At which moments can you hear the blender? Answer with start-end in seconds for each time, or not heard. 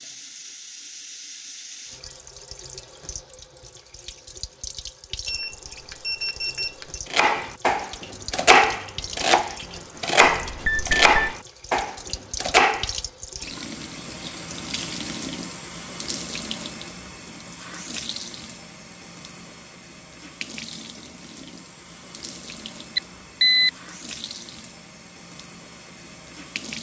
not heard.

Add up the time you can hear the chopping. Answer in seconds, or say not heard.
6 s.